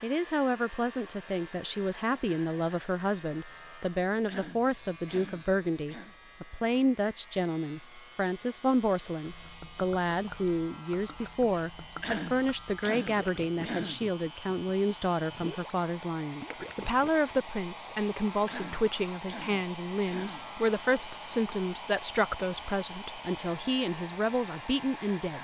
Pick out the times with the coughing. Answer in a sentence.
You can hear the coughing from 4.2 to 6.2 s, from 12.0 to 14.1 s and from 18.4 to 20.5 s.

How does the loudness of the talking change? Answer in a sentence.
The volume of the talking stays about the same.